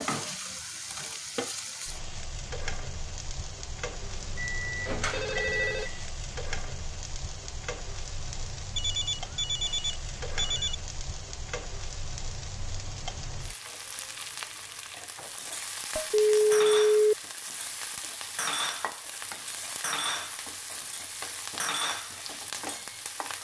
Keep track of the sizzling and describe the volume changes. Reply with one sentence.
The volume of the sizzling stays about the same.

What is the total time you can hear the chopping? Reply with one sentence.
You can't hear the chopping here.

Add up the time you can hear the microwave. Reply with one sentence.
You can hear the microwave for 2 seconds altogether.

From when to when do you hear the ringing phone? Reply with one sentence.
You can hear the ringing phone from 5.1 to 5.9 s, from 8.8 to 10.8 s and from 16.1 to 17.1 s.